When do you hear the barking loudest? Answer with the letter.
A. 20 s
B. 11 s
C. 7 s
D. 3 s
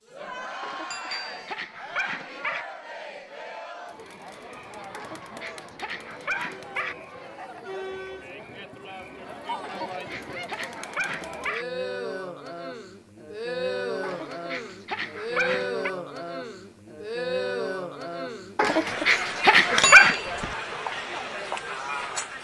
A.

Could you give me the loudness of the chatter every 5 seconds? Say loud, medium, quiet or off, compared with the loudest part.
medium, medium, loud, loud, loud.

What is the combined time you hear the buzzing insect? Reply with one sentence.
You can't hear the buzzing insect here.